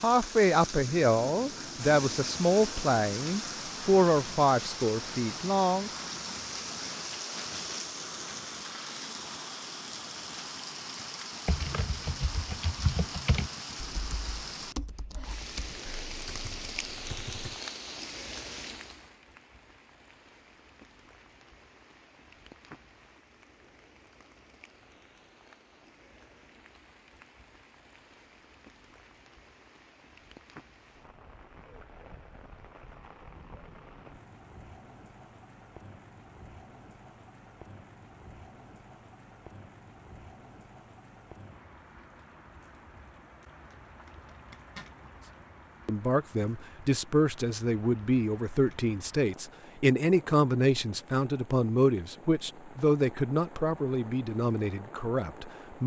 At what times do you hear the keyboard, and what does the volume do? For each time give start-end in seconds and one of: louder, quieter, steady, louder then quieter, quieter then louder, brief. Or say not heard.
11.4-17.6 quieter.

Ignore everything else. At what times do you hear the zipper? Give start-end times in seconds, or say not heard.
44.0-45.0.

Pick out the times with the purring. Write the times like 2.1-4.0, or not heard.
not heard.